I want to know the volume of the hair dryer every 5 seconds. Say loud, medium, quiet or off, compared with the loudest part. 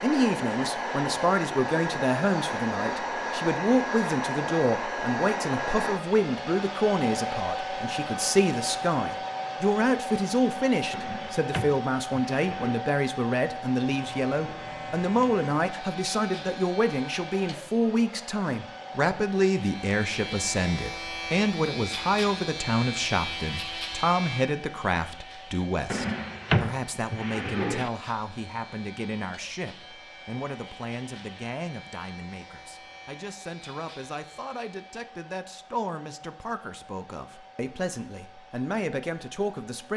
loud, loud, medium, medium, quiet, quiet, quiet, quiet.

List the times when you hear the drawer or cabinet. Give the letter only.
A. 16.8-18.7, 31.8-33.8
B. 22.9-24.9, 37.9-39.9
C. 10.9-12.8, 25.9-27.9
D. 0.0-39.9
C.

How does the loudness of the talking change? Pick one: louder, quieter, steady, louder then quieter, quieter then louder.
quieter.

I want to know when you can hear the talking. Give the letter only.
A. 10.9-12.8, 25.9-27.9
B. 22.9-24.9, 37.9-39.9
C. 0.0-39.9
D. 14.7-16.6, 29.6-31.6
C.